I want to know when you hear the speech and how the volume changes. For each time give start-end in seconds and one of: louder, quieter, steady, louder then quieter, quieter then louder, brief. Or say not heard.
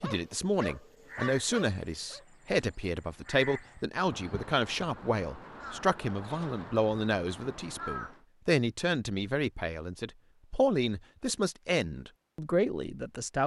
0.0-13.4 steady.